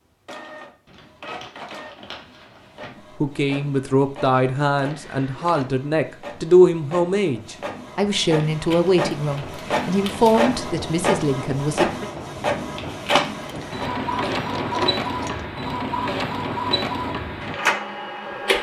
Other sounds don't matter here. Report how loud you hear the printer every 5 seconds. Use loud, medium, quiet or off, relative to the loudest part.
quiet, medium, loud, loud.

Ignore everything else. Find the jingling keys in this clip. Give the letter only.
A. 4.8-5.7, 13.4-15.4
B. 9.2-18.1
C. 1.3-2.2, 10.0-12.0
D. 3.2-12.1
A.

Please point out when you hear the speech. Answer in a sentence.
You can hear the speech from 3.2 to 12.1 s.